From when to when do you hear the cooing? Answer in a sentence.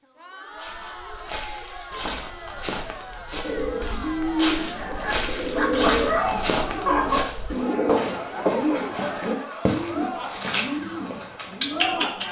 The cooing can be heard from 3.4 to 12.2 s.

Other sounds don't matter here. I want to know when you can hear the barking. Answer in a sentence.
The barking can be heard from 4.6 to 7.3 s.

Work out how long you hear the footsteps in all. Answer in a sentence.
You can hear the footsteps for 11 seconds altogether.